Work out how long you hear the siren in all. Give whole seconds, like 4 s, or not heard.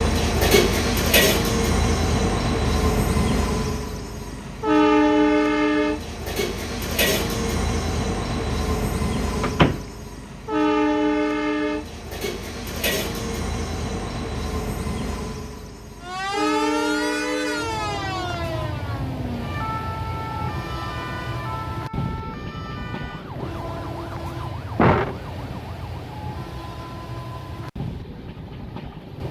10 s.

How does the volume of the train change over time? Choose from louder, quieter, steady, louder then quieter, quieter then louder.
quieter.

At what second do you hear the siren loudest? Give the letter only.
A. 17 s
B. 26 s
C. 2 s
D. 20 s
A.